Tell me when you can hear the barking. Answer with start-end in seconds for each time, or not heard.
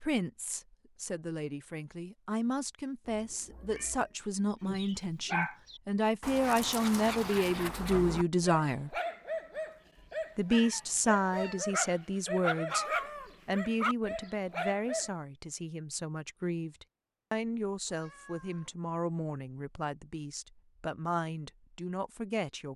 4.6-15.1.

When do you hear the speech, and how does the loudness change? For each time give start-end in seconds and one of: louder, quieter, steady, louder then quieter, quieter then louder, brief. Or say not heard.
0.0-8.9 louder
10.3-12.8 brief
13.4-22.7 steady.